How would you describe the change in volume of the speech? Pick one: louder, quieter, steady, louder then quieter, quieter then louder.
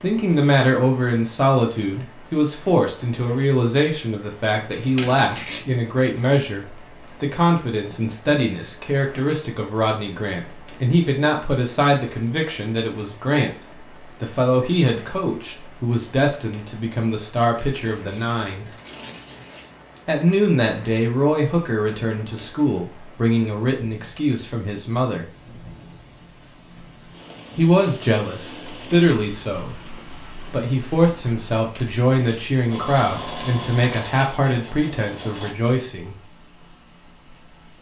steady.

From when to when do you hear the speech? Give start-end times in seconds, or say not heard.
0.0-18.7, 20.1-25.2, 27.6-36.1.